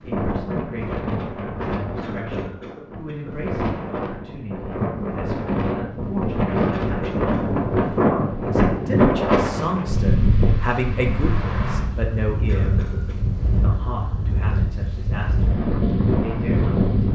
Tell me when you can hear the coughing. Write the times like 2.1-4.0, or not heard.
2.0-3.4, 6.7-7.6, 12.4-13.2.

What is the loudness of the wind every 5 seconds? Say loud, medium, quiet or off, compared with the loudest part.
medium, loud, medium, loud.